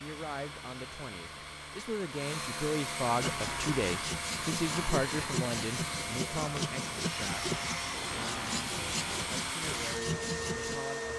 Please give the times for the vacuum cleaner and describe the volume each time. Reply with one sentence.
You can hear the vacuum cleaner from 0.0 to 11.1 s, getting louder.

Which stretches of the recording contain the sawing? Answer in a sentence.
You can hear the sawing from 3.2 to 10.8 s.